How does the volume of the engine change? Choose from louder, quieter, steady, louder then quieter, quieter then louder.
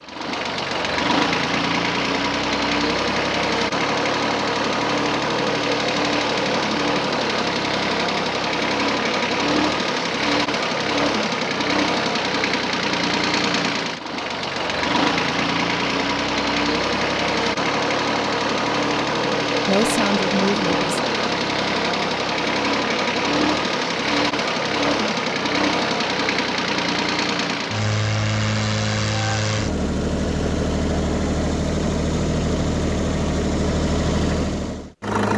steady.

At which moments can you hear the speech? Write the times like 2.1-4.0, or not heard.
19.6-20.9.